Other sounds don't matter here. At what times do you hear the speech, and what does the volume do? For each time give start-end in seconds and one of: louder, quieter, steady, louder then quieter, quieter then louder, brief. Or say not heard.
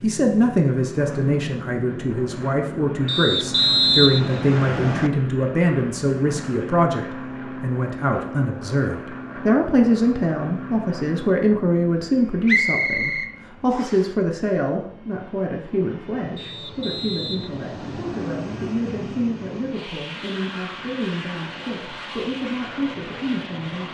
0.0-23.8 quieter.